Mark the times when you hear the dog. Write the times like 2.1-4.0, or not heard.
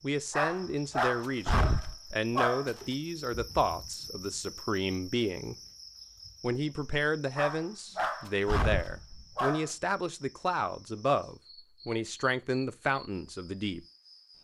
0.3-2.7, 7.3-9.7.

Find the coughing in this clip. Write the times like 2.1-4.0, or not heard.
not heard.